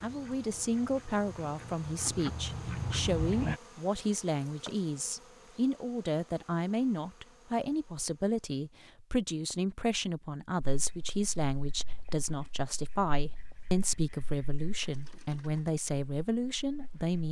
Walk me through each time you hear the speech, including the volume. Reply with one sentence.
The speech can be heard from 0.0 to 17.2 s, at a steady volume.